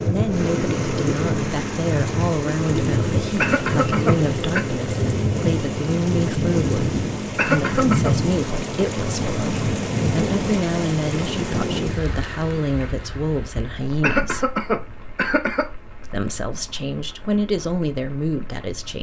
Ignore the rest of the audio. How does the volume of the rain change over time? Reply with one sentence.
The loudness of the rain goes down.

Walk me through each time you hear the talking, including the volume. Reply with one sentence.
You can hear the talking from 0.1 to 14.5 s, at a steady volume; and briefly from 16.0 to 18.9 s.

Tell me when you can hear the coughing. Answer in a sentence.
The coughing can be heard from 3.4 to 4.7 s, from 7.3 to 8.1 s and from 14.0 to 15.7 s.